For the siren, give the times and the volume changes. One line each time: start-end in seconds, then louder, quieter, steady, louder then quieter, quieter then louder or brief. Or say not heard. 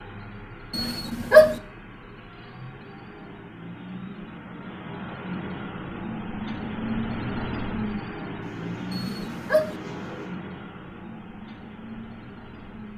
not heard.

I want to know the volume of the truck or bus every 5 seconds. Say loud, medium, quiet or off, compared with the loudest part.
medium, loud, medium.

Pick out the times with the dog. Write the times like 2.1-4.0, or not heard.
0.7-1.6, 8.9-9.8.